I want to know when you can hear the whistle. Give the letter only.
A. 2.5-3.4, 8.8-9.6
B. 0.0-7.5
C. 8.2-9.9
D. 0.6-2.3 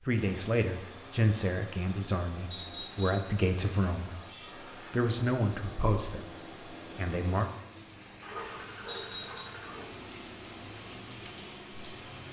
A.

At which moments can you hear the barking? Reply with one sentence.
You can hear the barking from 8.2 to 9.9 s.